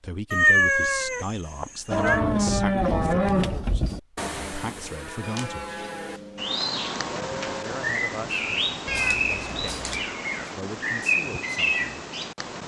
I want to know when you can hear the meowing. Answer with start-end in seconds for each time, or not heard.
0.3-2.2, 5.2-6.6, 8.8-10.1.